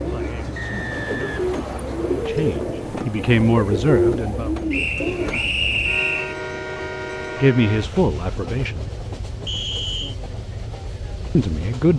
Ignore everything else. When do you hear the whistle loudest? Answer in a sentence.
The loudest moment of the whistle is at 6 seconds.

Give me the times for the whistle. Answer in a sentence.
The whistle can be heard from 0.6 to 2.1 s, from 4.7 to 6.3 s and from 9.4 to 10.2 s.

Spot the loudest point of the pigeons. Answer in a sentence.
The volume of the pigeons peaks at 4 seconds.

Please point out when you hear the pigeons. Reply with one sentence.
You can hear the pigeons from 0.0 to 5.5 s.